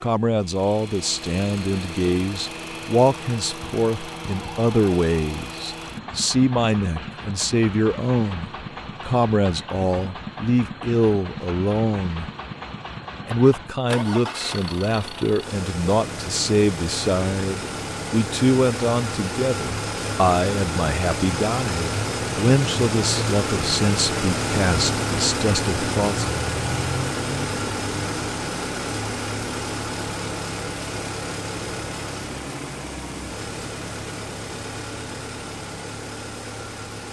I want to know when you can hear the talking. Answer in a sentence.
The talking can be heard from 0.0 to 12.3 s and from 13.2 to 26.2 s.